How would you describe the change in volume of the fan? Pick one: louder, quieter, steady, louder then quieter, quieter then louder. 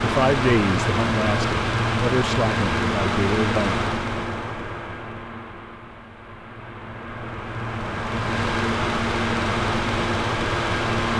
quieter then louder.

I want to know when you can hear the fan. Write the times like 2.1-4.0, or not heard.
0.0-11.1.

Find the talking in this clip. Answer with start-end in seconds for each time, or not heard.
0.0-3.9.